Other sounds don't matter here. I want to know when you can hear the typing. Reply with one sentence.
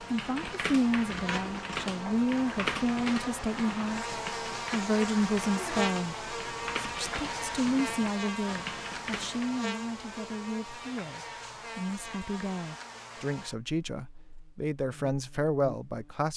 You can hear the typing from 0.0 to 9.6 s.